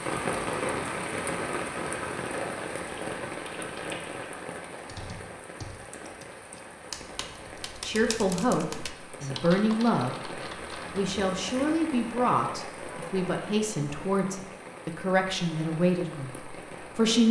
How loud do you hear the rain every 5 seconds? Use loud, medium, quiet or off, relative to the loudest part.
loud, medium, medium, medium.